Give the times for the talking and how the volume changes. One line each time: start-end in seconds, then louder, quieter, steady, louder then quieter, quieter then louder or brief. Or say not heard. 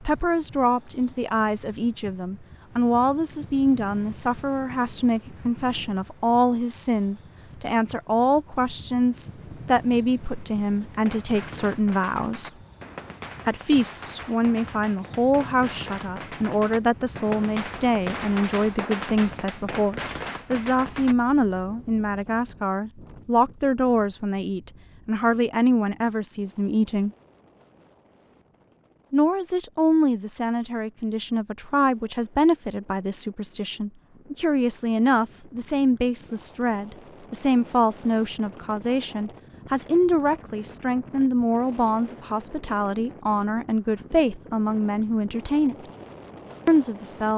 0.0-12.5 steady
13.4-27.1 steady
29.1-45.8 steady
46.6-47.3 brief.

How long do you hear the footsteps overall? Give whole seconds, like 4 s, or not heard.
not heard.